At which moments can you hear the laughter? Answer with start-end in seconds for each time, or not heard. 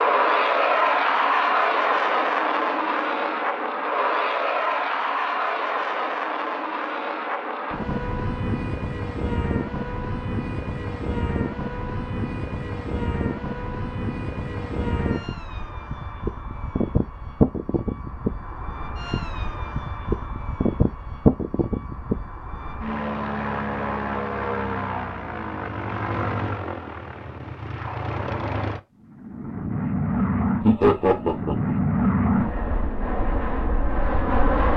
30.6-31.8.